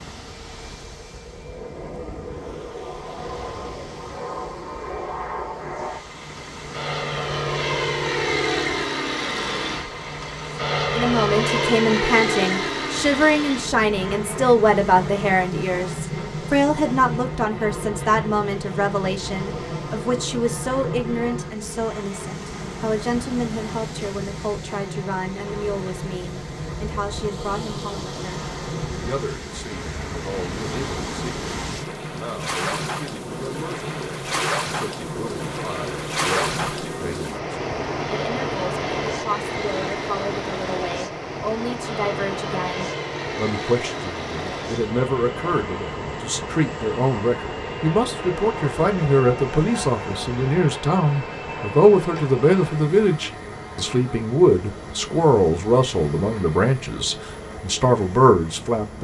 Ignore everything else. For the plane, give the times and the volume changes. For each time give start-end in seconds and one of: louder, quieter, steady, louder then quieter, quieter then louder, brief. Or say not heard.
0.1-58.9 quieter.